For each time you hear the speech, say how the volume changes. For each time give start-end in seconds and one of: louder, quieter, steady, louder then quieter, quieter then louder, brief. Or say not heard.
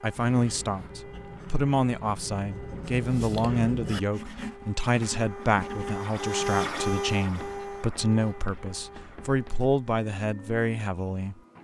0.0-11.3 steady.